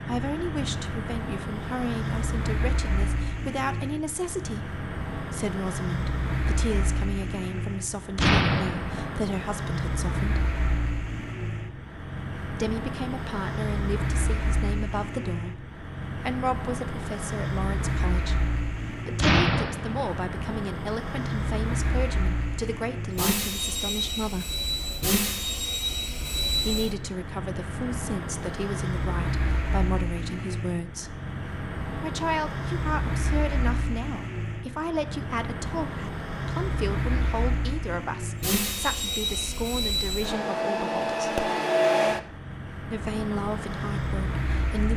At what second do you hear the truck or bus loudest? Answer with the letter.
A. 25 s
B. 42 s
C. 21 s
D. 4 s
B.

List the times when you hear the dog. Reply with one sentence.
You can't hear the dog here.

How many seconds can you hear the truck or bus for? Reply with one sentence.
You can hear the truck or bus for 45 seconds altogether.